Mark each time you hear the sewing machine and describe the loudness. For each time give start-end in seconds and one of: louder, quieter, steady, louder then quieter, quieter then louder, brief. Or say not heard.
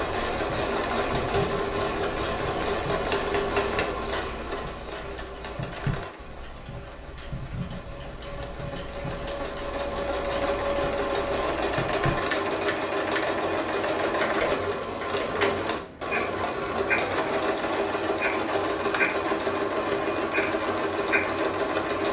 0.0-22.0 quieter then louder.